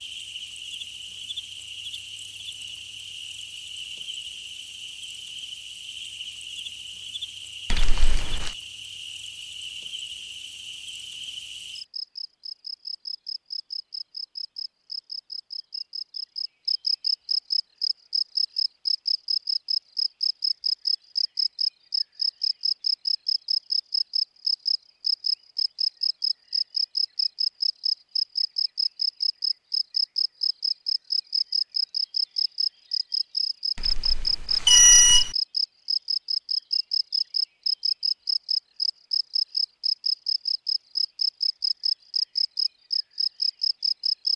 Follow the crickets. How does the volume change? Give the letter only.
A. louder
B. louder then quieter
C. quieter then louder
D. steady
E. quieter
A.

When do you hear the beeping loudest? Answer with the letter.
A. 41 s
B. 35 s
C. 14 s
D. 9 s
B.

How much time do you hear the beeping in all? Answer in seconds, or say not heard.
2 s.